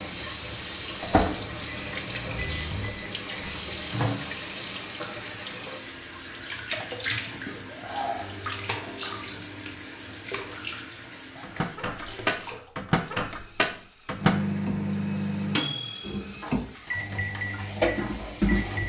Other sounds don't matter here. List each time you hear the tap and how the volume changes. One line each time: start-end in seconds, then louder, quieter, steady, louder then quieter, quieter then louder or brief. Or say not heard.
0.0-18.8 quieter then louder.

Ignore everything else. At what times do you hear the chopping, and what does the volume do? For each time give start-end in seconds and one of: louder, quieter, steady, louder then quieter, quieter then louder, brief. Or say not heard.
not heard.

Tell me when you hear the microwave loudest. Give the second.
15 s.